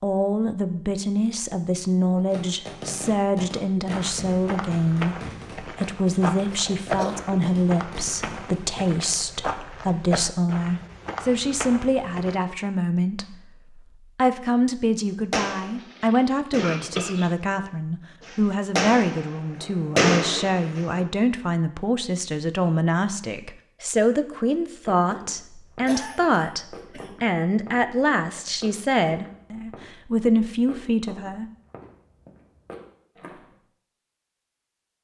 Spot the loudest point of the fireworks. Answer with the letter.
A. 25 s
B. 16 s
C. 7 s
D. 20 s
D.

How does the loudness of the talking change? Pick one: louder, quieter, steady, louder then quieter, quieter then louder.
steady.